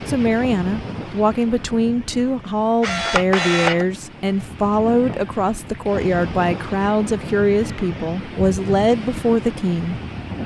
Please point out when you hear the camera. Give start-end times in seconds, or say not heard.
2.8-3.9.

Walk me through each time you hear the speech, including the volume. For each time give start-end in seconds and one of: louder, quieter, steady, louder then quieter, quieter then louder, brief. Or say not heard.
0.1-10.4 steady.